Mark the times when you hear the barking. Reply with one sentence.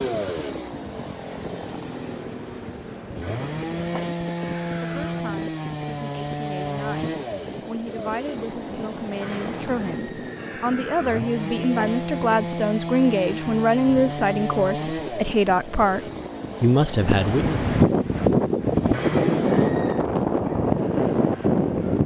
The barking can't be heard in this clip.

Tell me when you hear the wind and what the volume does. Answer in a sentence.
The wind can be heard from 0.0 to 22.0 s, getting louder.